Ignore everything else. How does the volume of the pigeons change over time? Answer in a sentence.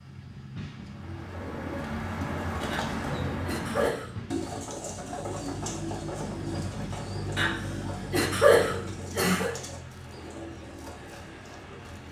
The volume of the pigeons goes down.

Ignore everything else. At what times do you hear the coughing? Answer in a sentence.
The coughing can be heard from 2.7 to 4.1 s and from 7.3 to 9.5 s.